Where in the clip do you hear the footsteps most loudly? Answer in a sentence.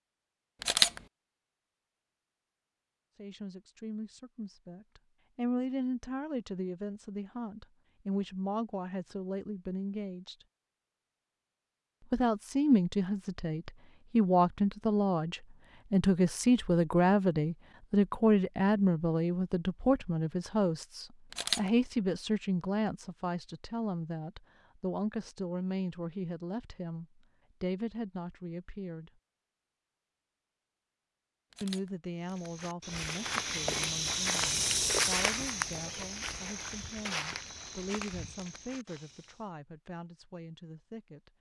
The loudest moment of the footsteps is at 35 seconds.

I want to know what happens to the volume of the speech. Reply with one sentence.
The loudness of the speech goes up, then down.